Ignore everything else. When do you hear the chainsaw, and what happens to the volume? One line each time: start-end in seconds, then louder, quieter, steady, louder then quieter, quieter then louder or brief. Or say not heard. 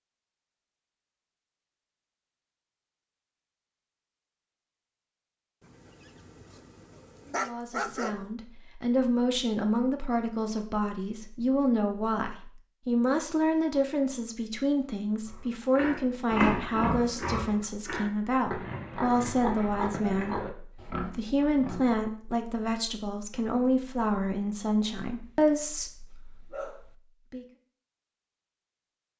not heard.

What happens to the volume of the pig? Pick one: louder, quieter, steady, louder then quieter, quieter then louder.
quieter.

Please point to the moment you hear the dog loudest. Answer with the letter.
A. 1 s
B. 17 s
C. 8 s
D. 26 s
C.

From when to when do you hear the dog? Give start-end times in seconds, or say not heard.
5.6-8.3, 25.2-26.9.